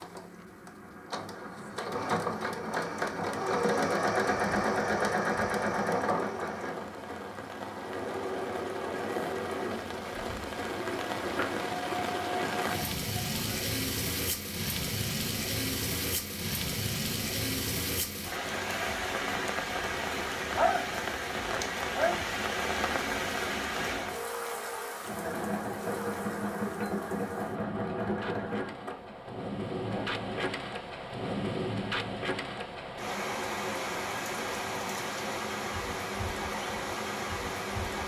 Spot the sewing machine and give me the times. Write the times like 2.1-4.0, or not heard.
0.0-13.8, 24.9-30.6.